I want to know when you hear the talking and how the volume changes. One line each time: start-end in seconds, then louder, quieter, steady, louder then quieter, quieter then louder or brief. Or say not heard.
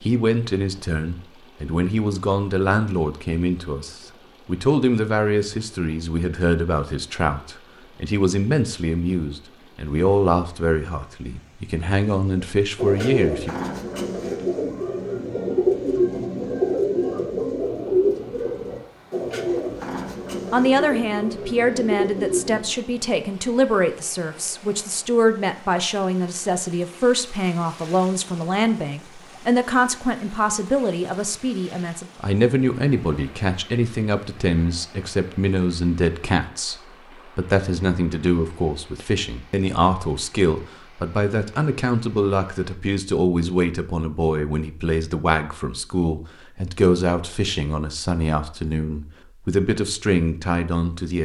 0.0-13.6 steady
20.5-51.1 steady.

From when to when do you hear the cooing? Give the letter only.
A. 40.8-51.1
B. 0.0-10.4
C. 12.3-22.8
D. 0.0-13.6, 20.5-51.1
C.